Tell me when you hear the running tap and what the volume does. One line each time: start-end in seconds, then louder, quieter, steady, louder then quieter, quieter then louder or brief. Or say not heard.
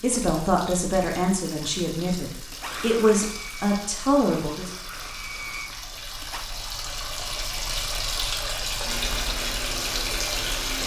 0.0-10.8 louder.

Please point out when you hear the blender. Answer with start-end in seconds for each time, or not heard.
2.5-6.5, 8.8-10.8.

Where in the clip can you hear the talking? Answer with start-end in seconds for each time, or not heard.
0.0-4.7.